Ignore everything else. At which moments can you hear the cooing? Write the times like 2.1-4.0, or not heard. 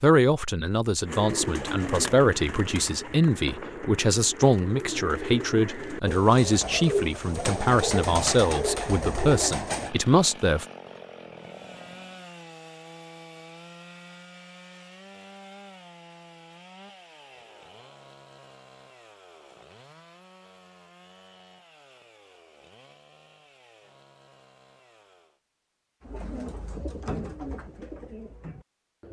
1.1-9.9, 26.0-29.0.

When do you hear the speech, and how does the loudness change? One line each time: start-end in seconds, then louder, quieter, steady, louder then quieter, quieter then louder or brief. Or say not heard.
0.0-10.7 steady.